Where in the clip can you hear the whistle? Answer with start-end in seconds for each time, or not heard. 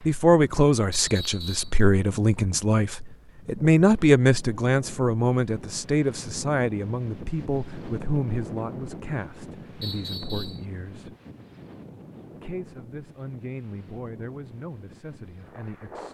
0.9-1.7, 9.8-10.7.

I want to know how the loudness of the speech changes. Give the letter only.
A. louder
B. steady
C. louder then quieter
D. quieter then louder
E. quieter
E.